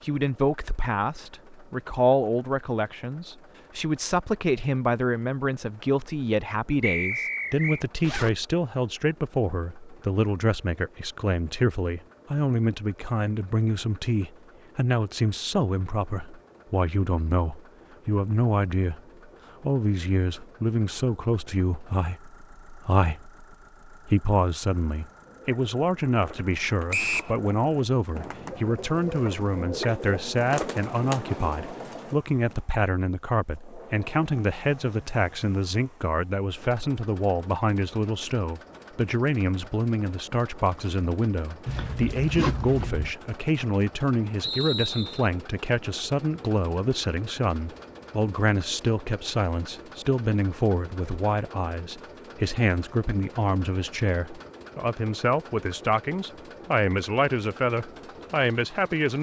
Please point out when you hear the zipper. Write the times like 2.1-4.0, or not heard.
8.0-8.4, 41.6-43.1.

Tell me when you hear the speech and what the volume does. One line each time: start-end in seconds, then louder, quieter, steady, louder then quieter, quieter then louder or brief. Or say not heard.
0.0-19.0 steady
19.6-59.1 steady.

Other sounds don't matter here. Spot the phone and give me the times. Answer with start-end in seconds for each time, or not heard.
not heard.